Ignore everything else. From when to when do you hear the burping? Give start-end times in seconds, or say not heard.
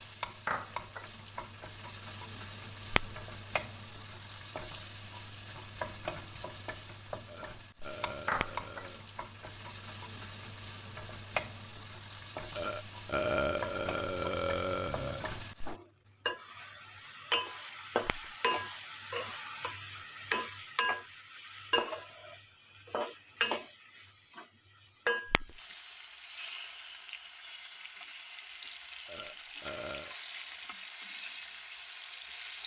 7.2-9.1, 12.6-15.2, 29.1-30.1.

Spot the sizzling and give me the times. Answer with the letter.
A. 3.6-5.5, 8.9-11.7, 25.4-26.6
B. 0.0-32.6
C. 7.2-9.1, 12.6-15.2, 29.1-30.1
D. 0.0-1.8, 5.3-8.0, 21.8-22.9
B.